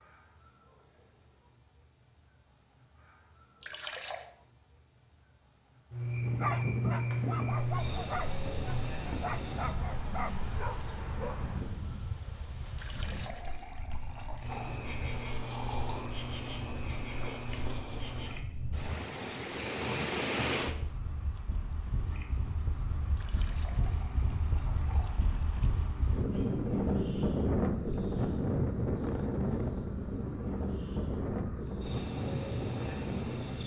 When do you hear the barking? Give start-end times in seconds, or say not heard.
6.4-11.4.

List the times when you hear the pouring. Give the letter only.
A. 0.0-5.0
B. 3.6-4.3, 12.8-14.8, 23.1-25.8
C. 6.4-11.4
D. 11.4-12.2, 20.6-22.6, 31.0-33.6
B.